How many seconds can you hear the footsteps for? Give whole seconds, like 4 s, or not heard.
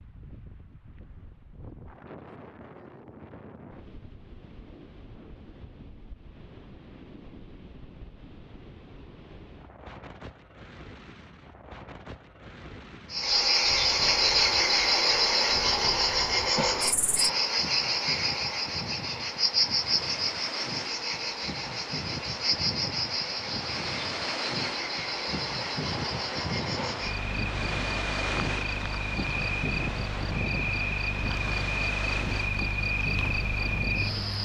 not heard.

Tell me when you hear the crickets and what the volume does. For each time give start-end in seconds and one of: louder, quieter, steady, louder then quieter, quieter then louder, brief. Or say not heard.
13.1-34.3 quieter.